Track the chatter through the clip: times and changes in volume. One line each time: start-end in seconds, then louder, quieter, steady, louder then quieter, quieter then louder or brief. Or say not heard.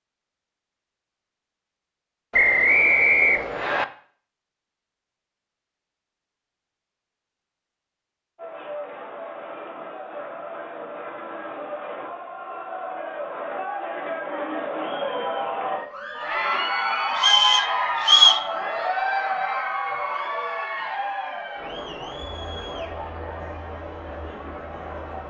8.3-25.2 louder then quieter.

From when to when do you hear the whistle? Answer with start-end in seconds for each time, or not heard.
2.3-3.9, 17.1-18.4.